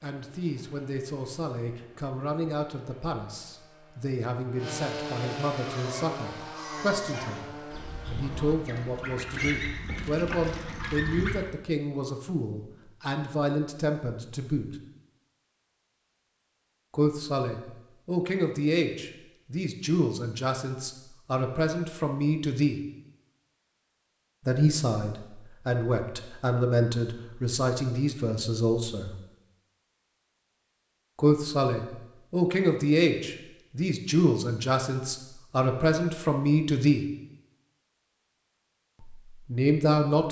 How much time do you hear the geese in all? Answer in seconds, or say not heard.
6 s.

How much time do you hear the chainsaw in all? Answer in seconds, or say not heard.
9 s.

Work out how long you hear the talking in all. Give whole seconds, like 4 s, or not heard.
32 s.